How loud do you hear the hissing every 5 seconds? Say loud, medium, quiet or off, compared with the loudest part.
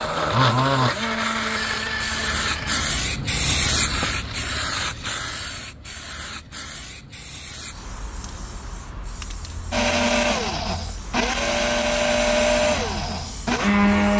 loud, medium, quiet.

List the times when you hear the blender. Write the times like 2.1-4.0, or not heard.
0.0-2.9, 9.7-14.1.